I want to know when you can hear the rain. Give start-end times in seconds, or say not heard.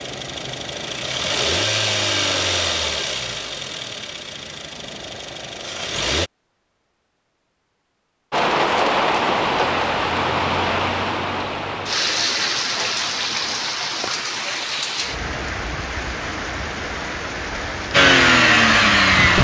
8.3-19.4.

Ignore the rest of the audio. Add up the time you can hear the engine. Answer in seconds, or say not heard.
8 s.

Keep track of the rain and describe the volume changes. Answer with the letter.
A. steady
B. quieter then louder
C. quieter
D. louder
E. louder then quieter
C.